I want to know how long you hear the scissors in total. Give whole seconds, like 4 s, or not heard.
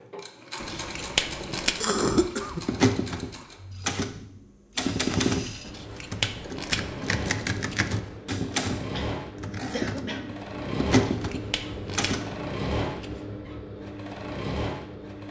6 s.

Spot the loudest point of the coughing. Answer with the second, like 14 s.
2 s.